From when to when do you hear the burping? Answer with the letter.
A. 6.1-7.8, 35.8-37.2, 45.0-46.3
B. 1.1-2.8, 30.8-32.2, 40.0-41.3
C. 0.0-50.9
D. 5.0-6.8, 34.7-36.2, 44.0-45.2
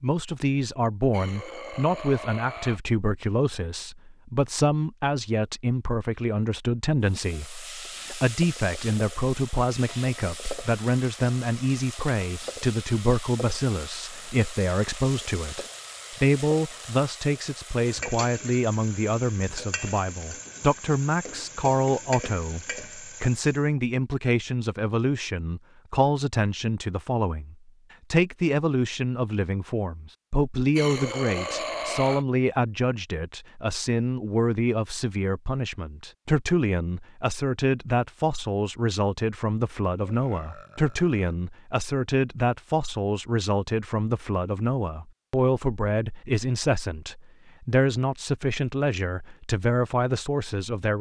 B.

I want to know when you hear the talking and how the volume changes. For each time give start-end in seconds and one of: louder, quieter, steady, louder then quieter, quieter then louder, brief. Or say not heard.
0.0-50.9 steady.